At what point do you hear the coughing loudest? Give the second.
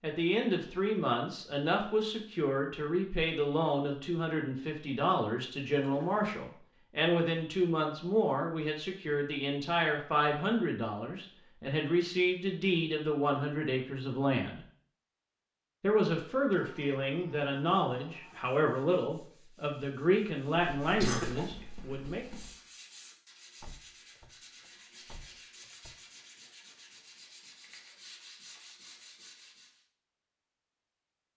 21 s.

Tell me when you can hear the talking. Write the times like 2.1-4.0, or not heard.
0.0-14.6, 15.8-22.2.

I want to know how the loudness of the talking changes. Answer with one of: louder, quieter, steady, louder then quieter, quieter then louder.
steady.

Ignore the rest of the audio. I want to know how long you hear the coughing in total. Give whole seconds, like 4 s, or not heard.
2 s.